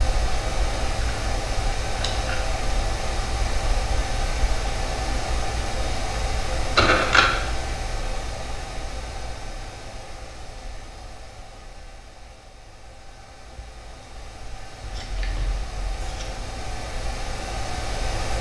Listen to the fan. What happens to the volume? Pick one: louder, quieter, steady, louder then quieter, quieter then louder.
quieter then louder.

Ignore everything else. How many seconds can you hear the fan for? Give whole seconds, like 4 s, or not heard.
18 s.